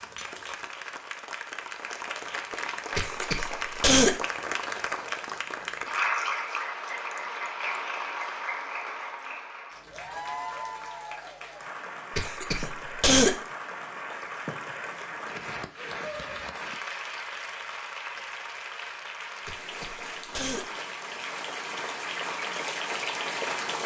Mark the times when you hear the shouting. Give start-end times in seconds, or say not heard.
not heard.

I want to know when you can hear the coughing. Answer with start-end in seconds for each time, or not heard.
3.0-4.2, 12.2-13.3, 19.4-20.6.